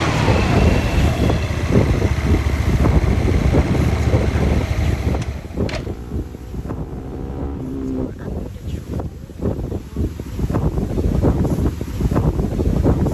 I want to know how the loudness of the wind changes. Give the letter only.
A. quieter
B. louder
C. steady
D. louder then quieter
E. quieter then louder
E.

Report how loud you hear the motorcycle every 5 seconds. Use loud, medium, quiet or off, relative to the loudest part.
loud, medium, off.